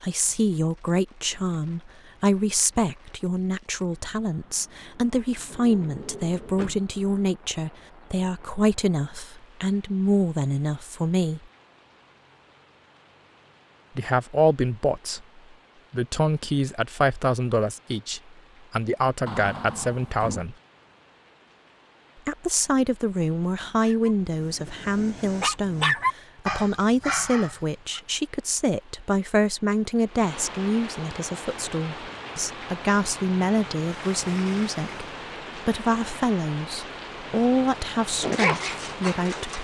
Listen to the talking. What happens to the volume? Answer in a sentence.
The loudness of the talking stays about the same.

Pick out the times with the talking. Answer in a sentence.
You can hear the talking from 0.0 to 11.4 s, from 13.9 to 20.6 s and from 22.2 to 39.6 s.